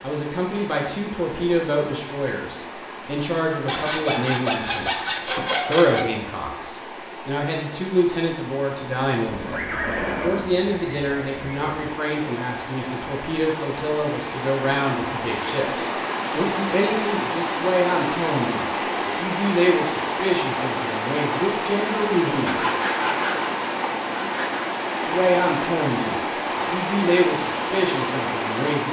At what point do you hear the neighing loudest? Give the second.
10 s.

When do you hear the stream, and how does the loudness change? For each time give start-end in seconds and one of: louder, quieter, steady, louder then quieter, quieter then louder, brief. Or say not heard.
0.0-28.8 louder.